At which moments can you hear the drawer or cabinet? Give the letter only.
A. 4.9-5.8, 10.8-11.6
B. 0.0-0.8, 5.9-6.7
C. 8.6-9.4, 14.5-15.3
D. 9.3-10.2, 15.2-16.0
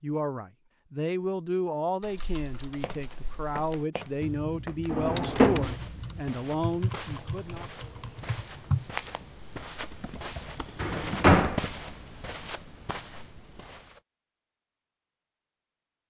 A.